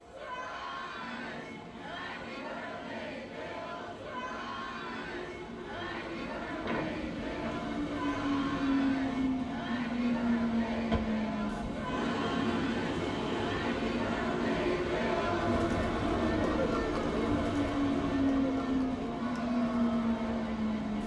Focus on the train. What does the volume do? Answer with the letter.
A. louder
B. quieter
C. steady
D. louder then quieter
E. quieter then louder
A.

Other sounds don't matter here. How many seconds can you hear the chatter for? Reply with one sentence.
The chatter can be heard for 21 seconds in total.